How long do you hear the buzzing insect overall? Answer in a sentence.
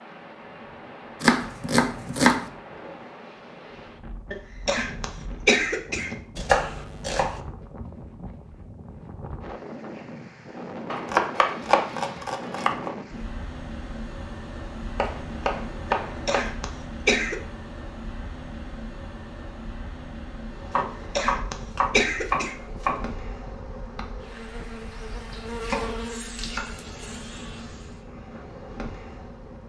The buzzing insect can be heard for 9 seconds in total.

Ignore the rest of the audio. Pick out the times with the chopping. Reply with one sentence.
You can hear the chopping from 1.2 to 2.5 s, from 6.3 to 7.4 s, from 10.9 to 12.9 s, from 14.9 to 16.5 s, from 20.7 to 23.1 s and from 25.6 to 26.6 s.